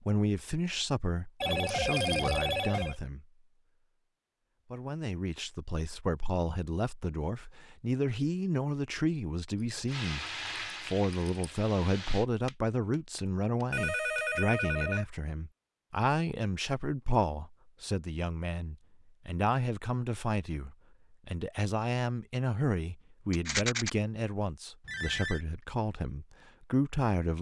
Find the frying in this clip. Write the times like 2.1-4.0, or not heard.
9.8-12.2.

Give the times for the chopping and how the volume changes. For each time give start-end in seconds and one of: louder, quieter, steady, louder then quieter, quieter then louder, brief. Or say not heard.
not heard.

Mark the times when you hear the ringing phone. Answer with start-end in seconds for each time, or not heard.
1.4-3.0, 12.4-15.1, 24.9-25.4.